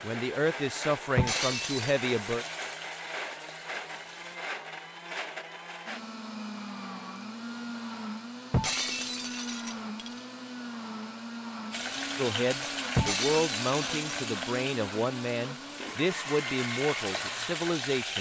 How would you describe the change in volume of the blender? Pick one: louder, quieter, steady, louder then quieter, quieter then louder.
steady.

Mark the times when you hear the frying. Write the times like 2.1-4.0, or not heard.
0.0-4.4, 11.7-18.1.